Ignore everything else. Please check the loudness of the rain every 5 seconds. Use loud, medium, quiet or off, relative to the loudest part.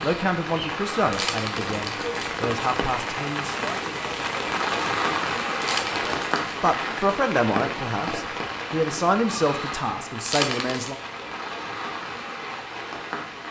loud, loud, medium.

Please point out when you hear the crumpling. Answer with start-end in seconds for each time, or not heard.
1.1-2.4, 5.6-6.5, 10.2-10.9.